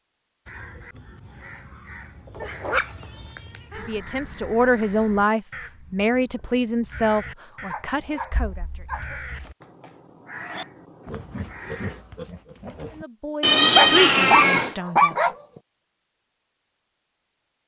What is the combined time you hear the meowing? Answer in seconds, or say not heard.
3 s.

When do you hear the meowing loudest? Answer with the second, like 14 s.
14 s.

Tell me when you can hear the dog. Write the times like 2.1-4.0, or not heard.
2.4-3.9, 7.7-9.2, 13.7-15.3.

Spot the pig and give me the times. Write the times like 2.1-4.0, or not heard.
10.3-13.1.